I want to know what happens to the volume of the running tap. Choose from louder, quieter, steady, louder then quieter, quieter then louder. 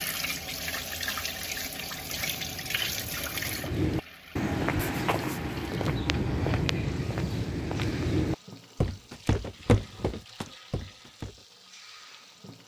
quieter.